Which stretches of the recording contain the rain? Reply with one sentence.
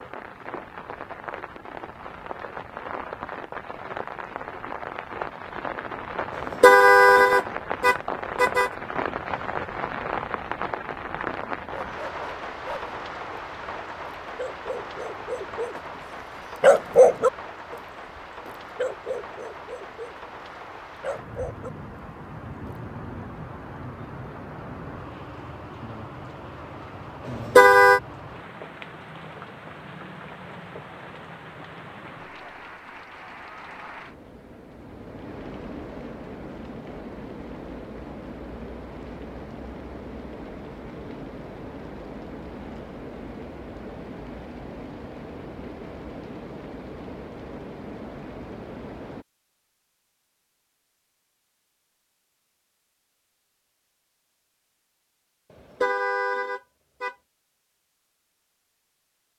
The rain can be heard from 0.0 to 49.2 s.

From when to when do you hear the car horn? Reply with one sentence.
The car horn can be heard from 6.6 to 8.7 s, from 27.6 to 28.0 s and from 55.8 to 57.1 s.